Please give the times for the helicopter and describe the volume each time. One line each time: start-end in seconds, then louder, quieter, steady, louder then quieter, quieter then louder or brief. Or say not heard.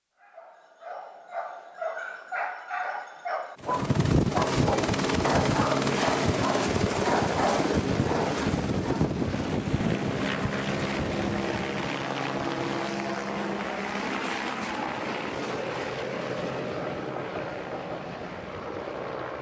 3.6-19.3 quieter.